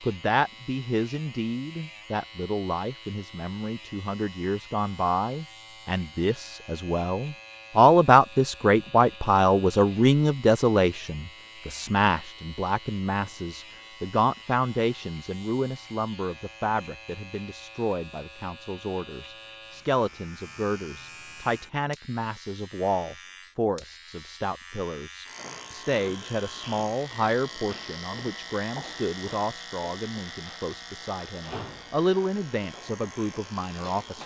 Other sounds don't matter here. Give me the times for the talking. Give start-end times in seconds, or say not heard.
0.0-34.2.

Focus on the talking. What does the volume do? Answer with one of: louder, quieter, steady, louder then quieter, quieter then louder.
louder then quieter.